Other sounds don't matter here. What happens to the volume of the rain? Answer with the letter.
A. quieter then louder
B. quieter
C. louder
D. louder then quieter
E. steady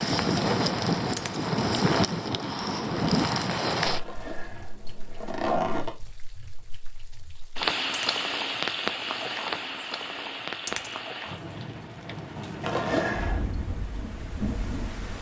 B.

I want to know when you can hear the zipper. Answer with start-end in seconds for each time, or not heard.
4.0-5.9, 12.6-13.6.